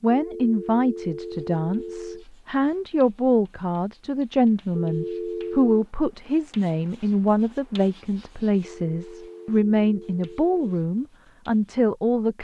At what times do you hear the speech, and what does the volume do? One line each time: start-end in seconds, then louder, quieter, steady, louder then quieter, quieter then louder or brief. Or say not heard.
0.0-12.3 steady.